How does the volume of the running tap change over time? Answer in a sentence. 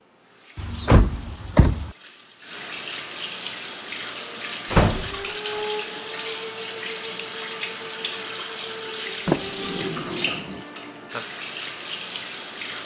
The volume of the running tap goes up.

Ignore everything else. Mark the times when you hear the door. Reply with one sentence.
The door can be heard from 0.6 to 1.9 s, from 4.7 to 5.2 s and from 9.2 to 10.6 s.